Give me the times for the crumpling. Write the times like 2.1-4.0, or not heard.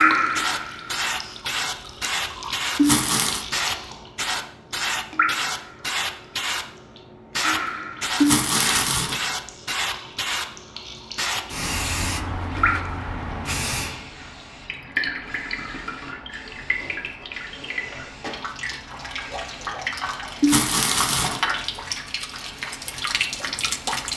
2.8-3.5, 8.2-9.2, 20.4-21.4.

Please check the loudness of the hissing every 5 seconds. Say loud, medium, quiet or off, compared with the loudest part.
loud, loud, loud, quiet, quiet.